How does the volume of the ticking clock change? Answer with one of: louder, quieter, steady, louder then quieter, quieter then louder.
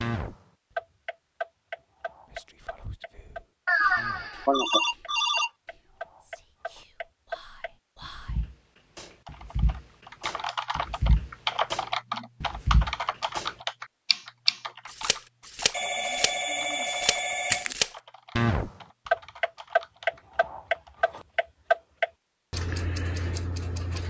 louder.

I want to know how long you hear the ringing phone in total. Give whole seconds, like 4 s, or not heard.
4 s.